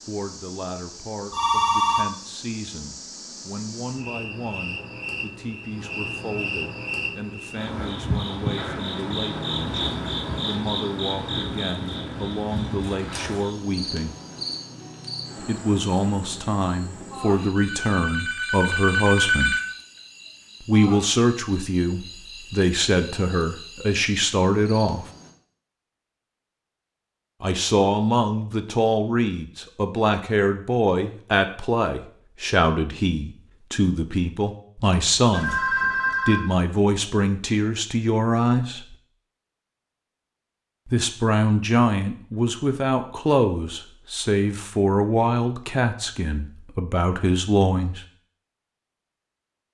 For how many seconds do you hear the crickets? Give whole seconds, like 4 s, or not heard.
25 s.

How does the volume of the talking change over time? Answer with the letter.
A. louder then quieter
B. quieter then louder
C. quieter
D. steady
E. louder
E.